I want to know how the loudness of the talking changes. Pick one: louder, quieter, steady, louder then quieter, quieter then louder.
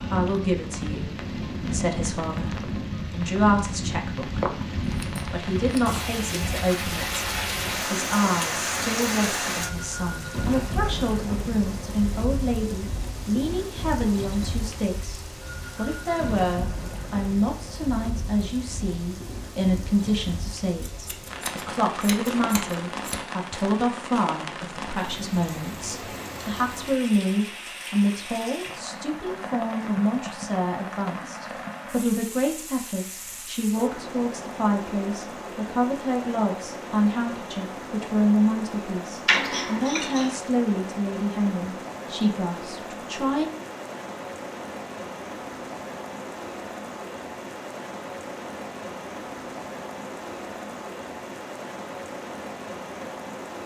steady.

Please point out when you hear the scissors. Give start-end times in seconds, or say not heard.
4.8-6.0, 20.8-23.2, 39.2-40.4.